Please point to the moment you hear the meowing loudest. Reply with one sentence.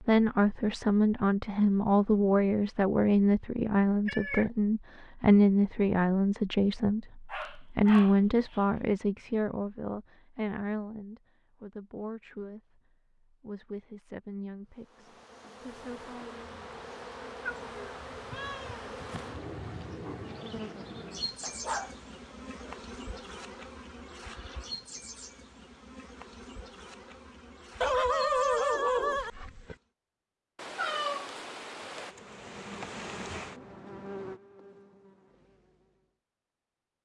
The loudest moment of the meowing is at 31 seconds.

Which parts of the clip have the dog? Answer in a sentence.
You can hear the dog from 7.2 to 8.6 s, from 21.4 to 22.9 s and from 27.8 to 29.8 s.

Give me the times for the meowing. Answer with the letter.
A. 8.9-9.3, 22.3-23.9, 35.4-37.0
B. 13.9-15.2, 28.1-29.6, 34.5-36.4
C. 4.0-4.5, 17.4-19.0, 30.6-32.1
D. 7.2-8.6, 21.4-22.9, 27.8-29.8
C.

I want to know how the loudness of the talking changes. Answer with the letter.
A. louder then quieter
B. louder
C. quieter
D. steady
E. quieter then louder
C.